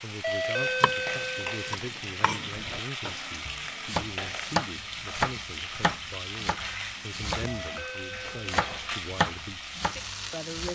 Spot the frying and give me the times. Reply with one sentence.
The frying can be heard from 0.0 to 10.7 s.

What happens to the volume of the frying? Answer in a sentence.
The volume of the frying stays about the same.